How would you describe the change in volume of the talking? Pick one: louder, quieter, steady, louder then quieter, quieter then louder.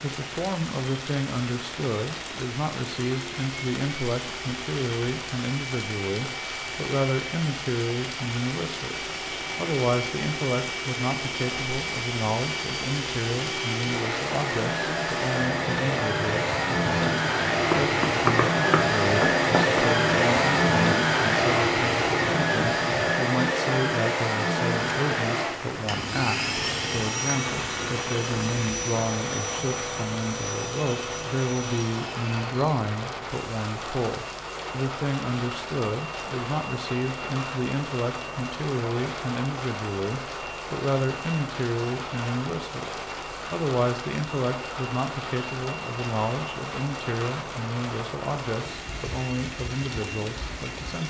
steady.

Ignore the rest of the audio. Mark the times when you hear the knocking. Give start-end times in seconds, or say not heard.
17.7-19.9.